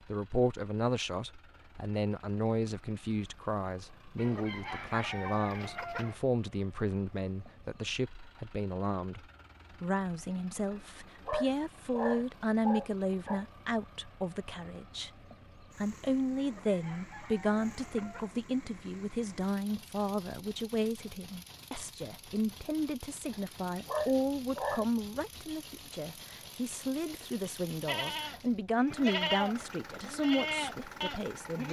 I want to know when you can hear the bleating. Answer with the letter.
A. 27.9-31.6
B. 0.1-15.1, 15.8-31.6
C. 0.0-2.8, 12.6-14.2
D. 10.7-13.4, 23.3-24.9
A.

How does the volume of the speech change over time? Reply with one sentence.
The loudness of the speech stays about the same.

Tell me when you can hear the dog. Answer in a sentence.
The dog can be heard from 10.7 to 13.4 s and from 23.3 to 24.9 s.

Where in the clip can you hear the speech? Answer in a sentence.
You can hear the speech from 0.1 to 15.1 s and from 15.8 to 31.6 s.